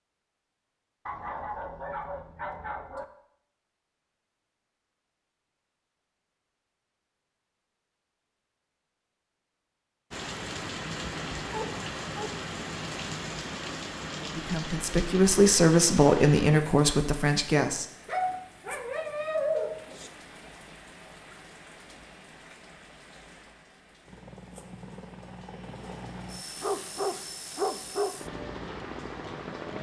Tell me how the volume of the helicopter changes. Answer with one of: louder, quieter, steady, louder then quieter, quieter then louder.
louder.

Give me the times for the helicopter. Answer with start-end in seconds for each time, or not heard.
24.1-29.7.